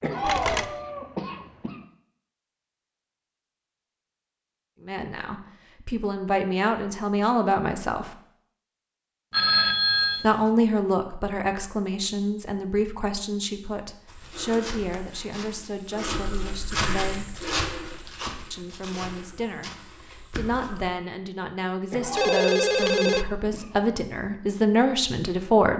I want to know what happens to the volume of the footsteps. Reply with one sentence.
The volume of the footsteps goes up, then down.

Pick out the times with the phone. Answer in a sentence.
You can hear the phone from 0.2 to 0.8 s, from 9.3 to 10.3 s and from 22.1 to 23.2 s.